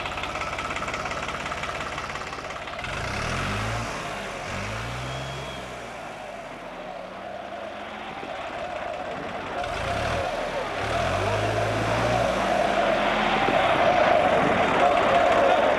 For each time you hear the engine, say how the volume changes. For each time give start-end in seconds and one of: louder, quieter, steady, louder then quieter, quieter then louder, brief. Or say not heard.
0.0-15.7 quieter then louder.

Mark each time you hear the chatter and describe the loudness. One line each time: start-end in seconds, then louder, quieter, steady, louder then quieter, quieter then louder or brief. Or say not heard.
0.0-15.7 louder.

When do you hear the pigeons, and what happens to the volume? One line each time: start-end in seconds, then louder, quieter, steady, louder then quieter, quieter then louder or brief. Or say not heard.
not heard.